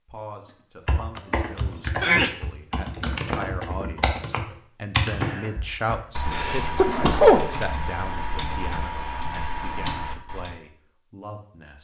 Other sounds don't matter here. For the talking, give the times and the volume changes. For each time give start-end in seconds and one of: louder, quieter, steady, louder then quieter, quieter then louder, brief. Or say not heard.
0.1-11.7 louder then quieter.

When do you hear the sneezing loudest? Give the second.
7 s.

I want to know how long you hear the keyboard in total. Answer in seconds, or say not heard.
10 s.